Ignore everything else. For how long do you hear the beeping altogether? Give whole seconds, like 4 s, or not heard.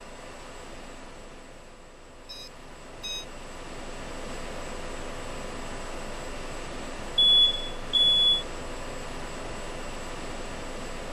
2 s.